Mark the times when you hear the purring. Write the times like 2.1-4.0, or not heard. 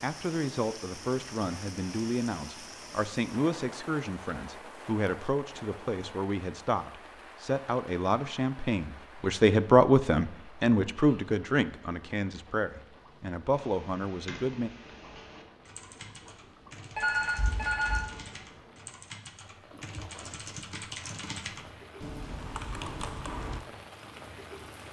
not heard.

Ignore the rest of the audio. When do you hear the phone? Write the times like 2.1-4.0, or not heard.
16.9-18.0.